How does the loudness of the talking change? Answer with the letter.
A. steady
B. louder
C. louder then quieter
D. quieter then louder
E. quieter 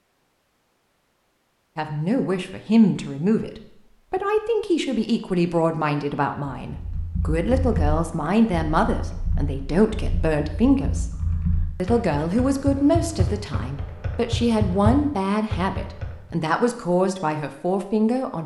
A.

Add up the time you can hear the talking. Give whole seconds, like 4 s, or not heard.
16 s.